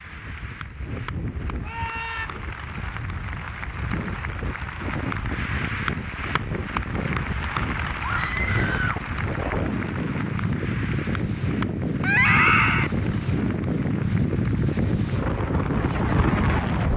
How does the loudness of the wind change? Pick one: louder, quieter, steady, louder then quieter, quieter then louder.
louder.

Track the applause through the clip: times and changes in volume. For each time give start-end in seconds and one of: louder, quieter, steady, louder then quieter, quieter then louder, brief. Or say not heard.
0.0-16.9 louder then quieter.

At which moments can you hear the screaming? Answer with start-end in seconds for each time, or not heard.
1.6-2.3, 8.0-9.1, 12.0-12.9.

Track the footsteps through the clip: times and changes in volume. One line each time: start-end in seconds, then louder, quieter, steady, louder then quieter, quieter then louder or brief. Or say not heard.
not heard.